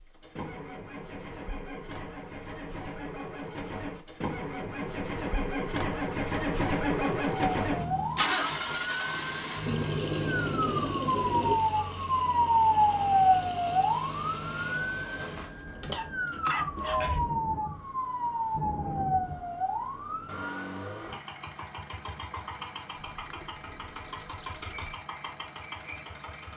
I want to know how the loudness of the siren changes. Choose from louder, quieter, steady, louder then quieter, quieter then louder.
louder then quieter.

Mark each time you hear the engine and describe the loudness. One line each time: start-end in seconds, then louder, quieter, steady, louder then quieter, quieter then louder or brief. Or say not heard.
0.0-26.5 louder then quieter.